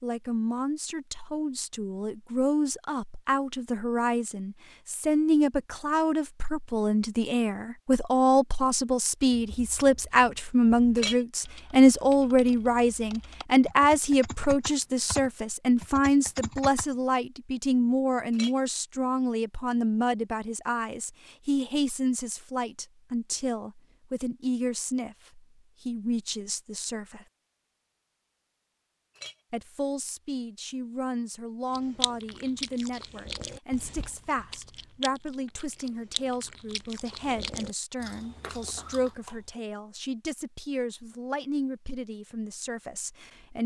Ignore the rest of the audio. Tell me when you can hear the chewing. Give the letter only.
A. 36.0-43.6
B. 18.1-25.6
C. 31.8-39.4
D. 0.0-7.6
C.